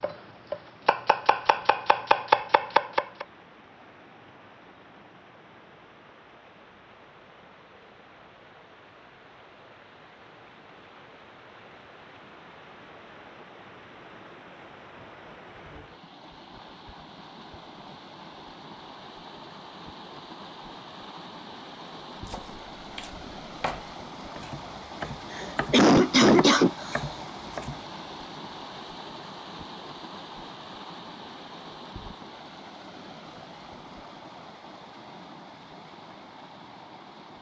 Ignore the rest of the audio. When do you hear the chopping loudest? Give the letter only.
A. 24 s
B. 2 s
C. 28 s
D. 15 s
B.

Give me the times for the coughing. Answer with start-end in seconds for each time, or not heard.
25.3-27.1.